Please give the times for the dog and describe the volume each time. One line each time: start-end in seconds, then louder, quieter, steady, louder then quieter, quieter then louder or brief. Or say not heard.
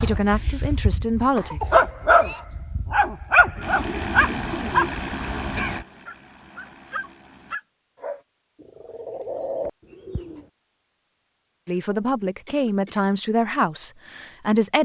0.0-8.2 quieter then louder.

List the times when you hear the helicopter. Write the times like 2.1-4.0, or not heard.
3.6-7.6.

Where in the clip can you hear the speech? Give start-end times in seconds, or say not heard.
0.0-1.6, 11.7-14.8.